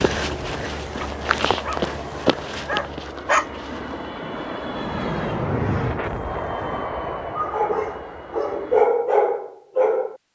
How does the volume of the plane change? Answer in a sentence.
The volume of the plane goes up, then down.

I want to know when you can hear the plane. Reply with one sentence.
You can hear the plane from 0.2 to 8.9 s.